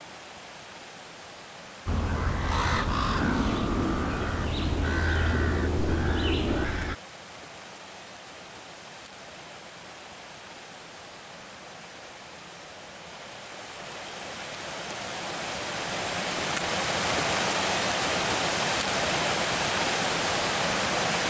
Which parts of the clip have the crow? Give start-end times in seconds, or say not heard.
1.9-7.0.